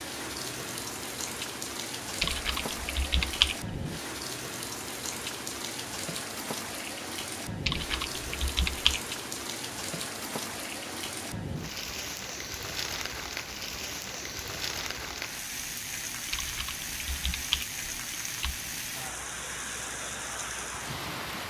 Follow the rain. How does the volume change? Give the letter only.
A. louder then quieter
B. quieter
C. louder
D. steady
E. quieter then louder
D.